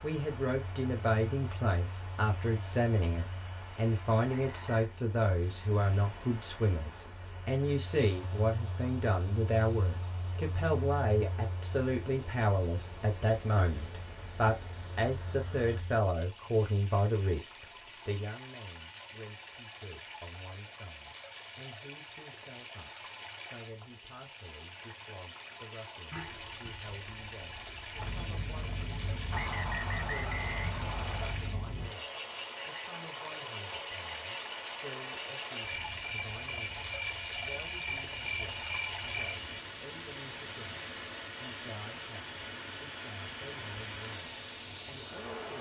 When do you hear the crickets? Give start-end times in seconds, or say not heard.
0.0-45.5.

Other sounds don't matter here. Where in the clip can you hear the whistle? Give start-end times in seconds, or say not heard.
4.2-4.8, 29.3-31.4.